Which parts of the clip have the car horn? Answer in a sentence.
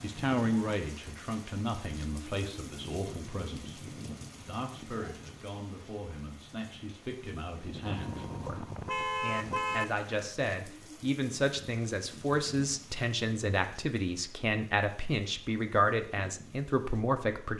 You can hear the car horn from 7.8 to 9.8 s.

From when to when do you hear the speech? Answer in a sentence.
You can hear the speech from 0.0 to 17.5 s.